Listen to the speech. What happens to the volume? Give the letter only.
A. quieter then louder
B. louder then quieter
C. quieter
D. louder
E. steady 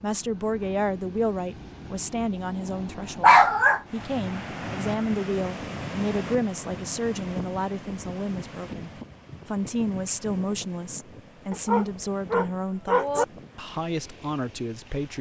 E.